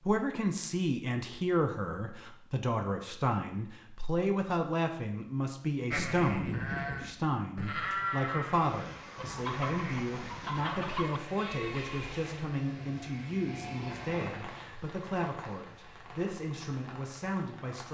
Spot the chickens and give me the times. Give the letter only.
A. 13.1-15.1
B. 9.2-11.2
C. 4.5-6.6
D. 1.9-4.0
B.